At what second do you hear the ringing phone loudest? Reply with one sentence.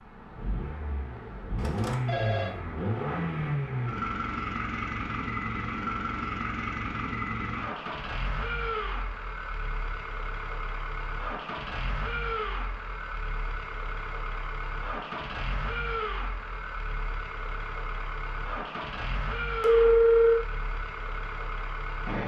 The loudest moment of the ringing phone is at 20 seconds.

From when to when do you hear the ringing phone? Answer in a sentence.
The ringing phone can be heard from 1.6 to 2.5 s and from 19.6 to 20.4 s.